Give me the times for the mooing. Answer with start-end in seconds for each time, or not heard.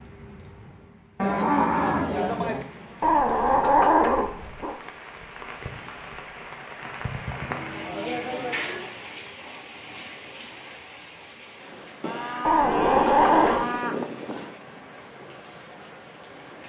1.1-2.6, 7.3-8.9, 12.0-14.5.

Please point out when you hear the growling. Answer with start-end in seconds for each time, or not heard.
3.0-4.8, 12.4-13.7.